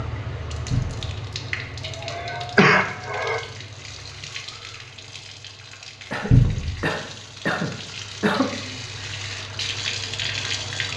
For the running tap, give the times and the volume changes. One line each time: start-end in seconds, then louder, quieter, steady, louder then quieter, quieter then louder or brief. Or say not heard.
0.0-10.9 quieter then louder.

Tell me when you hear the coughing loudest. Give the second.
3 s.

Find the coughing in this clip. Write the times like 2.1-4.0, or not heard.
1.8-3.4, 6.1-8.7.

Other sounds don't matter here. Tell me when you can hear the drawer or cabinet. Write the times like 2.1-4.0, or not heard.
0.7-1.1, 6.3-6.8.